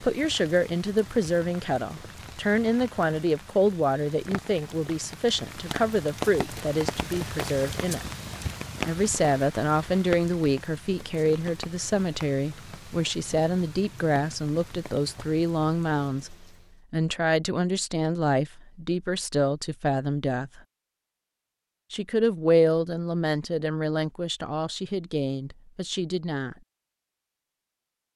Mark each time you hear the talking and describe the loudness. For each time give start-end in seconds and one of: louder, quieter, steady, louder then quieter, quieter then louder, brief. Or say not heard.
0.0-8.1 steady
8.8-20.6 steady
21.9-26.6 quieter.